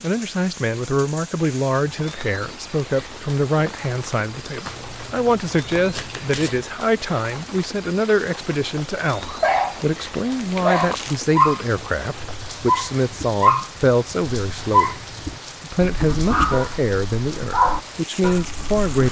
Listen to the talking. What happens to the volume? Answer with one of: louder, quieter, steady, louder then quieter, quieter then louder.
steady.